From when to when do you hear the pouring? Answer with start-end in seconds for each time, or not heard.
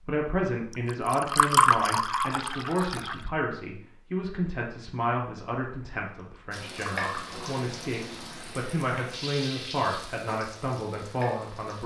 0.8-3.1, 6.3-7.5.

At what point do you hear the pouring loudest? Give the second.
2 s.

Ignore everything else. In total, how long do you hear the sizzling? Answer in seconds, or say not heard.
5 s.